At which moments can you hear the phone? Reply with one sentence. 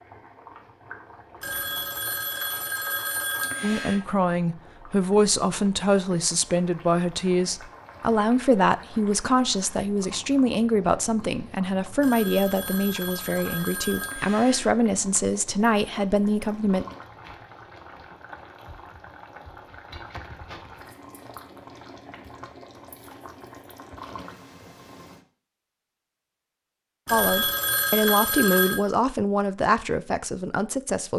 You can hear the phone from 1.4 to 4.0 s, from 12.0 to 14.7 s and from 27.1 to 28.8 s.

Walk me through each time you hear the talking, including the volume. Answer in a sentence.
You can hear the talking from 3.6 to 16.9 s, at a steady volume; and from 27.1 to 31.1 s, getting quieter.